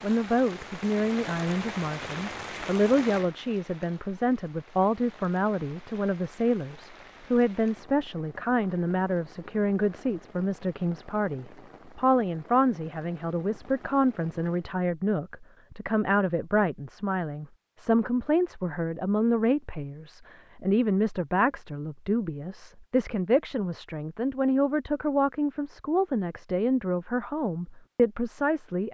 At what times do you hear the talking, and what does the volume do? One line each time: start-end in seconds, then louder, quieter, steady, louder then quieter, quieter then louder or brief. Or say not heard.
0.0-28.8 steady.